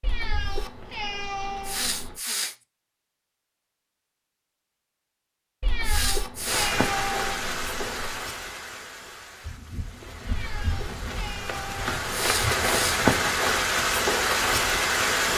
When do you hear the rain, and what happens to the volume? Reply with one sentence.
You can hear the rain from 6.5 to 15.3 s, getting quieter then louder.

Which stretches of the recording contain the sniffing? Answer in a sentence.
You can hear the sniffing from 1.6 to 2.5 s, from 5.8 to 6.8 s and from 12.1 to 13.0 s.